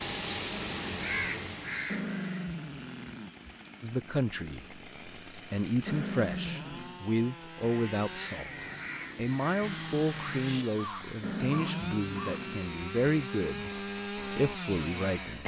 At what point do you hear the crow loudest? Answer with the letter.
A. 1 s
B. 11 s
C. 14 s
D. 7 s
A.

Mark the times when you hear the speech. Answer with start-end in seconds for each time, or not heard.
3.8-15.4.